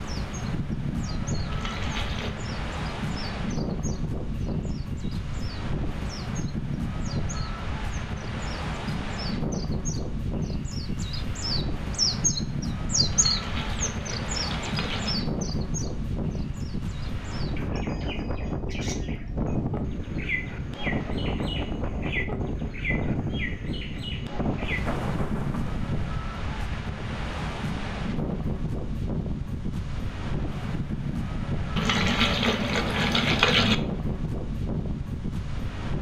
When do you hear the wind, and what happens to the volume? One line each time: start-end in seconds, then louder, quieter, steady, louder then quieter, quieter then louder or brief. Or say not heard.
0.0-35.9 steady.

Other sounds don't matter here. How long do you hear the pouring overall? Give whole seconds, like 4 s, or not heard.
5 s.